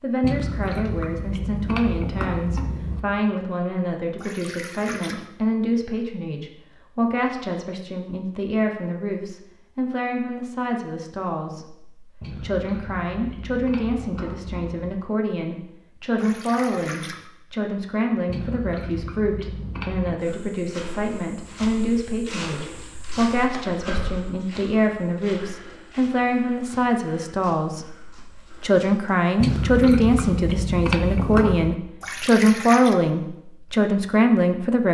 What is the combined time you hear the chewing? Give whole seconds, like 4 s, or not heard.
10 s.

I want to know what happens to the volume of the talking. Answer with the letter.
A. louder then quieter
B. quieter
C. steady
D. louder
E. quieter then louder
D.